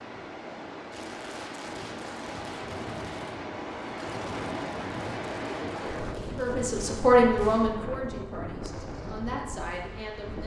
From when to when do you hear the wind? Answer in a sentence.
You can hear the wind from 0.0 to 10.4 s.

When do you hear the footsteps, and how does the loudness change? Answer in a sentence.
You can't hear the footsteps here.